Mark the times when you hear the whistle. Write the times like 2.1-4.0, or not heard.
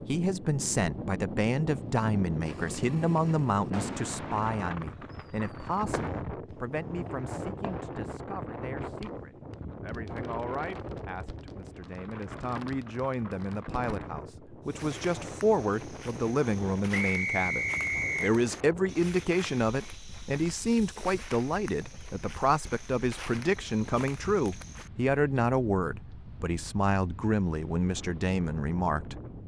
16.9-18.4.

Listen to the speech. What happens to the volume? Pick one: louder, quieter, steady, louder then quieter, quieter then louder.
quieter then louder.